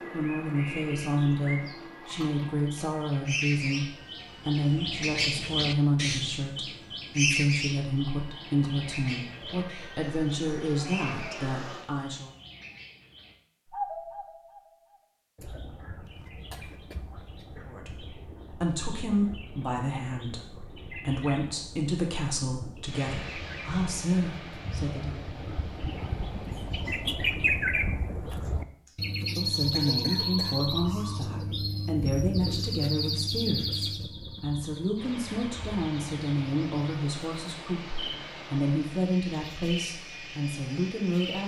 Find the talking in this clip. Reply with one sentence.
You can hear the talking from 0.1 to 12.3 s, from 17.6 to 25.2 s and from 29.4 to 41.4 s.